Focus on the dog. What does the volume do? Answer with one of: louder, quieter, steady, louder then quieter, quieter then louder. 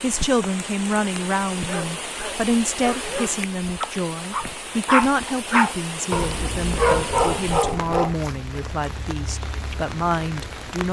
louder.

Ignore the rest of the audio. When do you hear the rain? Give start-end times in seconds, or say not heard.
0.0-10.8.